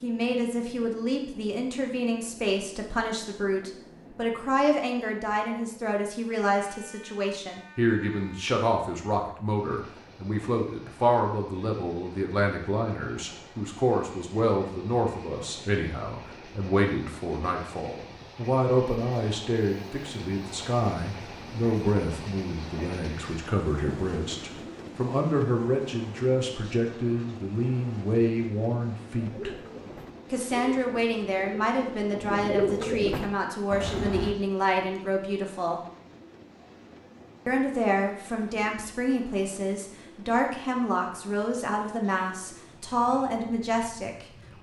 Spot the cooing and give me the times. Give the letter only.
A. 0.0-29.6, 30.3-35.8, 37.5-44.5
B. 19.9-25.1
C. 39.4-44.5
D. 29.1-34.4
D.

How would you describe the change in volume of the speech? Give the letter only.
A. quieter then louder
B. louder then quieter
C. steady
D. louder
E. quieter
C.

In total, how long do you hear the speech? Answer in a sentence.
The speech can be heard for 42 seconds in total.